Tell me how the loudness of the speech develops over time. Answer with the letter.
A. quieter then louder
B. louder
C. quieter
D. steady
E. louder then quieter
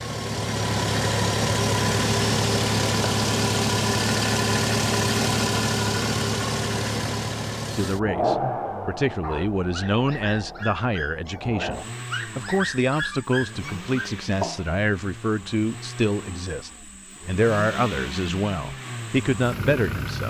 D.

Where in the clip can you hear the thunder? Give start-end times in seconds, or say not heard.
not heard.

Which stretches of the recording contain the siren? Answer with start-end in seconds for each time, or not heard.
not heard.